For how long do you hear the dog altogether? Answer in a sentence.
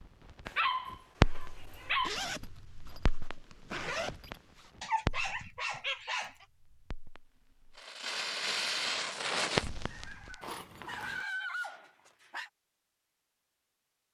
You can hear the dog for 6 seconds altogether.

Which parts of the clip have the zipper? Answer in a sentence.
You can hear the zipper from 2.0 to 4.7 s and from 10.4 to 11.2 s.